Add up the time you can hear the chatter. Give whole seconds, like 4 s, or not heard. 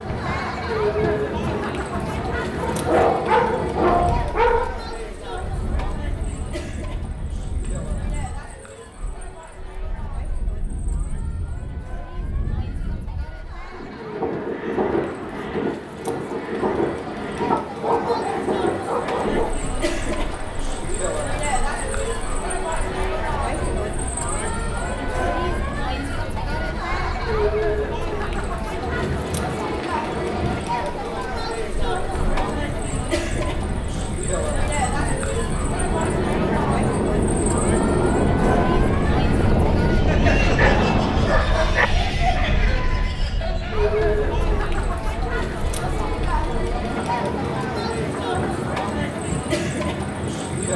51 s.